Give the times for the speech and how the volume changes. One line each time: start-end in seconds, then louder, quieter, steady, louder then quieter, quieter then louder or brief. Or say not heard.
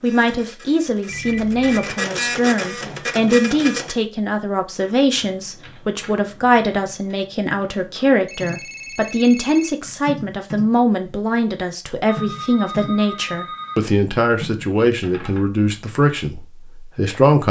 0.0-17.4 steady.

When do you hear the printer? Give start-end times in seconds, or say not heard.
0.0-4.0.